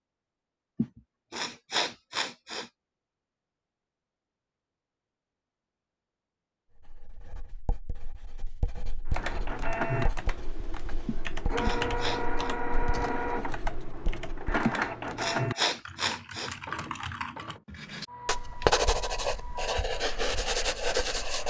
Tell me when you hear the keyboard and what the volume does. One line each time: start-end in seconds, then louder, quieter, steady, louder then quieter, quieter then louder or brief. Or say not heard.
9.1-17.6 steady.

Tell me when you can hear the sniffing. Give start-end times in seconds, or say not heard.
0.8-2.7, 11.1-12.5, 14.7-16.6.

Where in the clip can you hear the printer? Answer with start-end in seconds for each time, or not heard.
9.1-21.4.